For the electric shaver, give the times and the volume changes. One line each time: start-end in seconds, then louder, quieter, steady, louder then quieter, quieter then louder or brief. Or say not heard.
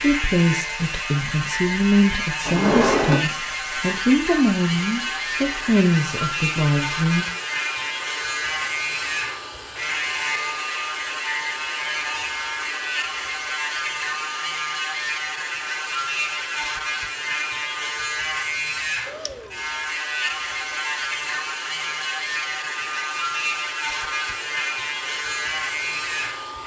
0.0-26.6 steady.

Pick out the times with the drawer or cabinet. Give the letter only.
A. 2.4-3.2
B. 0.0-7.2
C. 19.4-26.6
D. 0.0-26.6
A.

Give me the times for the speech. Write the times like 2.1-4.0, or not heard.
0.0-7.2.